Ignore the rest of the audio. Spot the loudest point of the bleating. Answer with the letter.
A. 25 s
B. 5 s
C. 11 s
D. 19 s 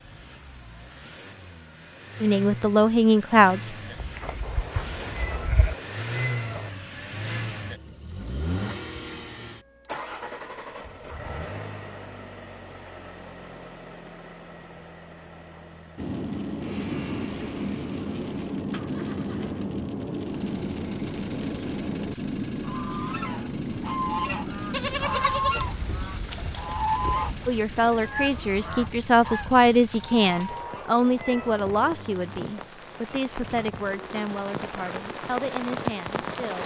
A.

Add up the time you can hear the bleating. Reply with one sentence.
You can hear the bleating for 5 seconds altogether.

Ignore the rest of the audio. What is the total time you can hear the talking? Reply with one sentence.
The talking can be heard for 11 seconds in total.